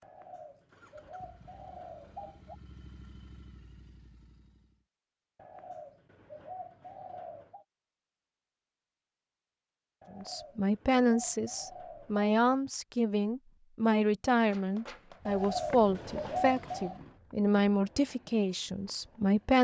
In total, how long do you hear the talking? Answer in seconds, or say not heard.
9 s.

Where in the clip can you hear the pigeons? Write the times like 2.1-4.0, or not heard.
0.0-2.5, 5.3-7.7, 10.0-12.6, 15.2-17.0.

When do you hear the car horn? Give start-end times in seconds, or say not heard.
not heard.